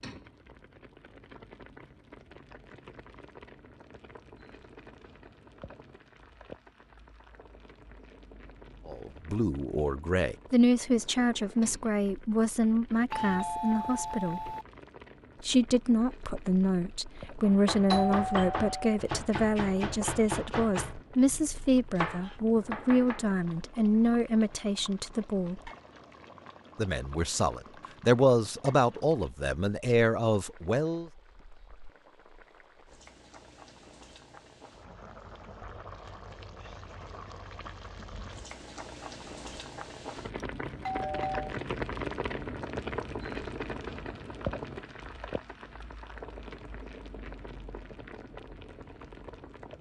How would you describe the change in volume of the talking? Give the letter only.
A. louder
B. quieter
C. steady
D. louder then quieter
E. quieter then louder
C.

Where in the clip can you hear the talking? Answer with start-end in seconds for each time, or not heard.
8.8-14.6, 15.4-25.7, 26.8-31.1.